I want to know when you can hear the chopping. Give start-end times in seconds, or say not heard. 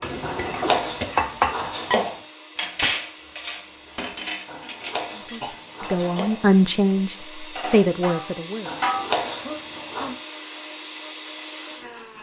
0.2-2.2, 4.5-6.5, 8.7-10.2.